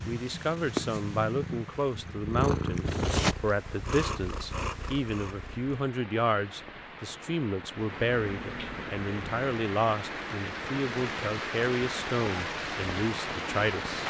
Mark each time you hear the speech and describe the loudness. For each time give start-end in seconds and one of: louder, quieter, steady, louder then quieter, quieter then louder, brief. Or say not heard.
0.1-14.0 steady.